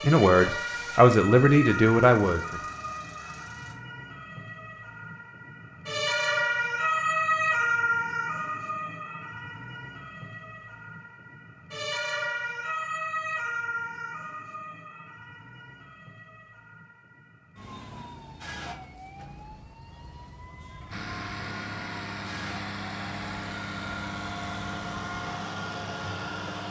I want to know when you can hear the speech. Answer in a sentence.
You can hear the speech from 0.0 to 2.6 s.